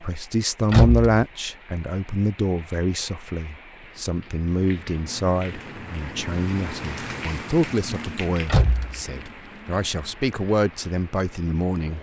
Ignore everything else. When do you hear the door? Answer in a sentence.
The door can be heard from 0.7 to 1.2 s and from 8.4 to 9.0 s.